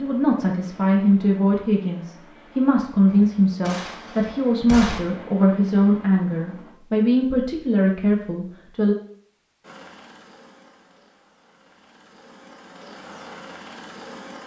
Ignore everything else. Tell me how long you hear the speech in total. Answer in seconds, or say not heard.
9 s.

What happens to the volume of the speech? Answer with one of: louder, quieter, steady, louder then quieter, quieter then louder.
steady.